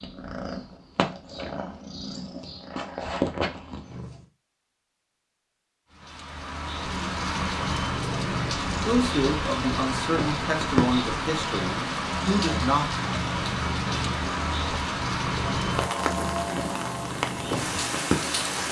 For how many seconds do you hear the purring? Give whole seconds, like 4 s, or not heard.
16 s.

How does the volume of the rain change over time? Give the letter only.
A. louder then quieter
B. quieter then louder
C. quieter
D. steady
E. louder
D.